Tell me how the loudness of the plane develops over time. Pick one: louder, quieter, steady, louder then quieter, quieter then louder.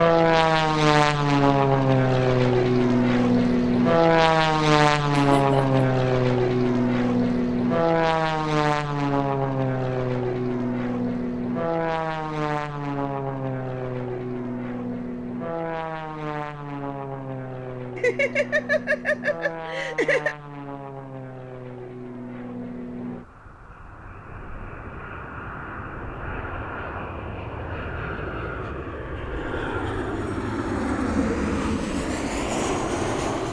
quieter then louder.